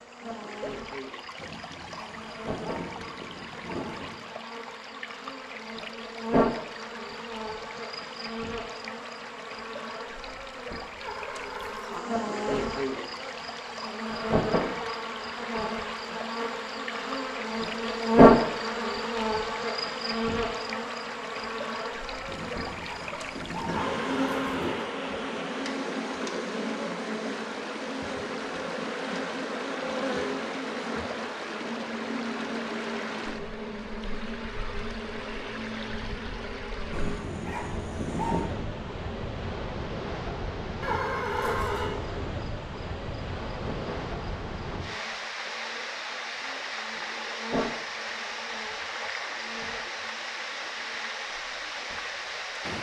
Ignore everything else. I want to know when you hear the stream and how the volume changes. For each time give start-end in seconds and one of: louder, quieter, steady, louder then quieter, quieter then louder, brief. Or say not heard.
0.0-52.7 louder.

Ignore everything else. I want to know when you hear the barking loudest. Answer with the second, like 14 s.
38 s.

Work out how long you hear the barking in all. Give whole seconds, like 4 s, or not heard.
7 s.